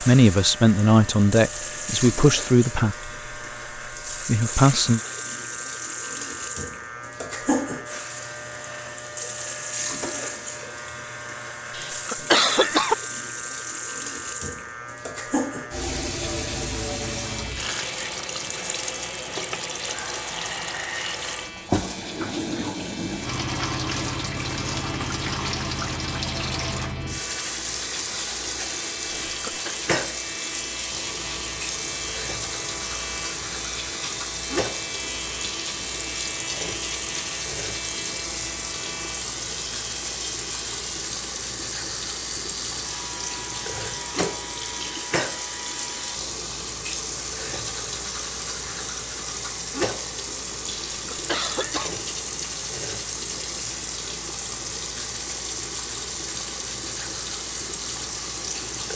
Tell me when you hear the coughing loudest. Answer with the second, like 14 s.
12 s.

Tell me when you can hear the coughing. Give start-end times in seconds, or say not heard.
11.7-12.9, 29.2-29.7, 50.9-51.9.